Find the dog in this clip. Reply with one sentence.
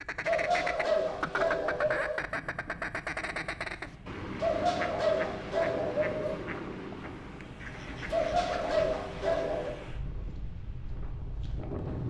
You can hear the dog from 0.2 to 2.2 s, from 4.4 to 6.4 s and from 8.1 to 9.8 s.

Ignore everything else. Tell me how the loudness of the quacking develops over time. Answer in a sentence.
The volume of the quacking goes down.